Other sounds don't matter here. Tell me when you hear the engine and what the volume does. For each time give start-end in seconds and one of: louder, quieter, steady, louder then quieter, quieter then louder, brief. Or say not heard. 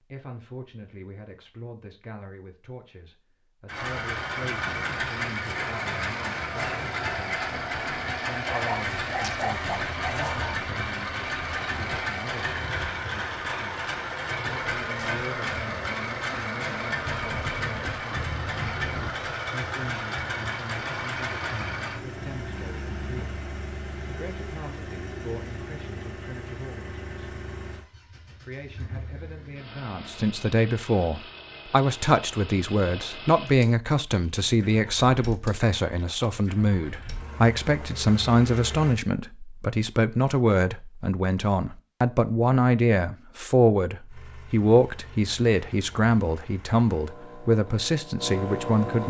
3.6-39.0 quieter
44.0-49.0 louder.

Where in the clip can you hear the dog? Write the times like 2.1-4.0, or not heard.
8.4-10.6.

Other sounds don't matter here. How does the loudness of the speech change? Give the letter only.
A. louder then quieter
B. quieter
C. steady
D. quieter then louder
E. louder
E.